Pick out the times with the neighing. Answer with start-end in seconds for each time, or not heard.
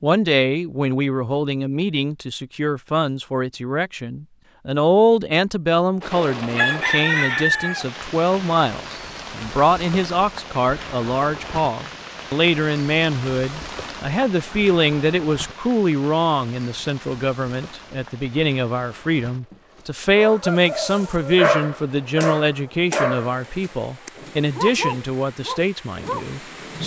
not heard.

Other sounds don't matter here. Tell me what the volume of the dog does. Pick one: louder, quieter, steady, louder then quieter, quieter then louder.
quieter.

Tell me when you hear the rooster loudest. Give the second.
7 s.